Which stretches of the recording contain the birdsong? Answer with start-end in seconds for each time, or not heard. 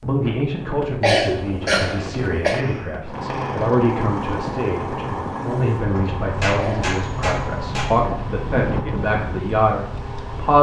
not heard.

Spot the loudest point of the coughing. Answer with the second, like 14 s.
1 s.